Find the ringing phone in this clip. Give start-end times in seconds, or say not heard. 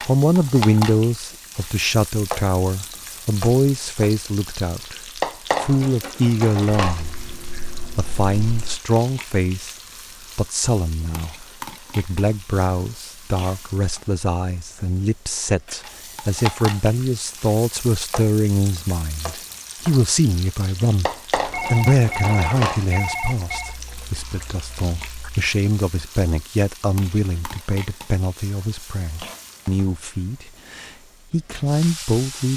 21.4-23.8.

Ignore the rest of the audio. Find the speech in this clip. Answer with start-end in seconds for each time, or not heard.
0.0-7.2, 8.0-9.8, 10.3-21.1, 21.7-32.5.